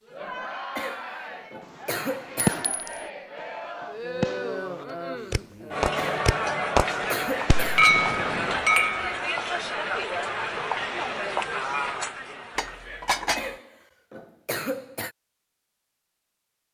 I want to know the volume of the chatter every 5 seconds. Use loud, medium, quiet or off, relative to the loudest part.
medium, loud, loud, off.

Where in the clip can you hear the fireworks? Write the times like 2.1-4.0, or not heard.
1.9-8.6.